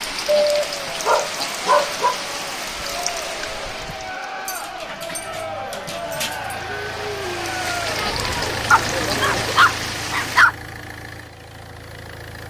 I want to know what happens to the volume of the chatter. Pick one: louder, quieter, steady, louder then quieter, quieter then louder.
louder.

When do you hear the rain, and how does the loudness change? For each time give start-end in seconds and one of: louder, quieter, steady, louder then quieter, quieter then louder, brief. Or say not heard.
0.0-10.4 quieter then louder.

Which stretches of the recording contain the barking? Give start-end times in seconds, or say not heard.
0.2-2.1, 4.5-6.5, 8.7-10.6.